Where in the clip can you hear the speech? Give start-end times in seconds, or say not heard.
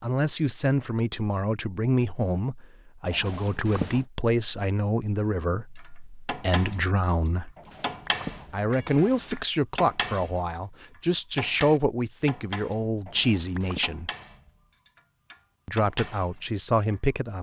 0.0-7.5, 8.5-14.1, 15.7-17.3.